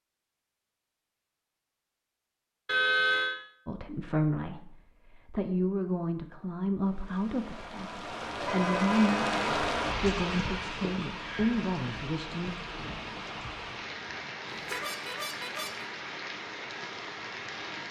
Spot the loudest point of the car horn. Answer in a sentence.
The loudest moment of the car horn is at 3 seconds.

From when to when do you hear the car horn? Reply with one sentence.
The car horn can be heard from 2.6 to 3.4 s, from 8.3 to 9.4 s and from 14.5 to 15.8 s.